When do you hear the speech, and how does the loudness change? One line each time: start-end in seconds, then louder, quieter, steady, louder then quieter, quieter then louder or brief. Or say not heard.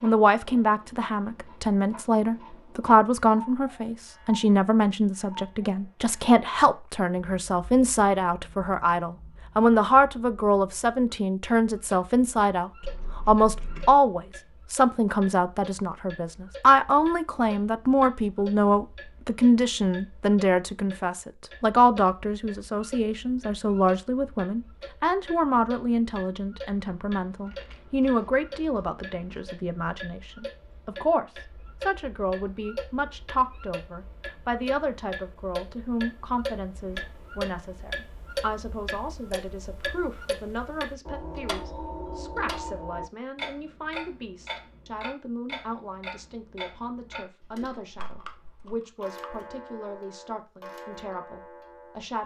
0.0-52.2 quieter.